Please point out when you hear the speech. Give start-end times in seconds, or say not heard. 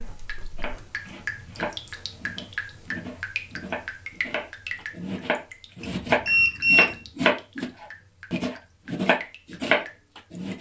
not heard.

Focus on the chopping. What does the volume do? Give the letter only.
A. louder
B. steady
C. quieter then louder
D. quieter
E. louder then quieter
A.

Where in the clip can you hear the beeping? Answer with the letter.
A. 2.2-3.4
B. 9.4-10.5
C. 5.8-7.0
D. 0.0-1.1
C.